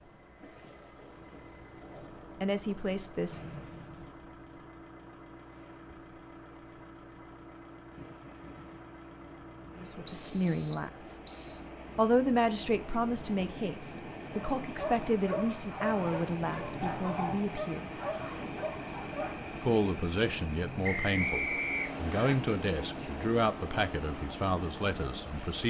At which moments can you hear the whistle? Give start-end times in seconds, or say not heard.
3.3-4.2, 10.1-11.7, 20.8-22.4.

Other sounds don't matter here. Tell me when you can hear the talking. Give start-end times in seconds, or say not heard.
2.4-3.5, 9.8-10.9, 11.9-17.9, 19.6-25.6.